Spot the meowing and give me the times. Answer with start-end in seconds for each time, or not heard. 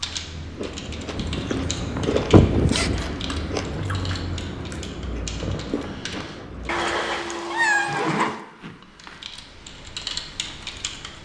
6.7-8.4.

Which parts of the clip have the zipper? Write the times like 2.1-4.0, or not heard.
1.1-3.0, 7.8-9.2.